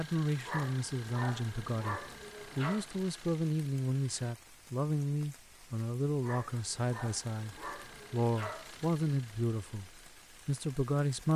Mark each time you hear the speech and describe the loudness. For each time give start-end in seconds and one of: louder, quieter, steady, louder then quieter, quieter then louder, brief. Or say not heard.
0.0-11.3 steady.